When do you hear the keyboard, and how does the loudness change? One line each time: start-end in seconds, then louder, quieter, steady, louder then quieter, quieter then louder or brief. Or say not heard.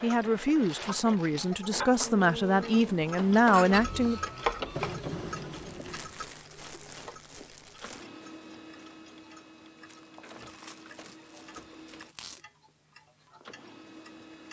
not heard.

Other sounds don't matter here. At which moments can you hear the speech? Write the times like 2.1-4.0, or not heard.
0.0-4.2.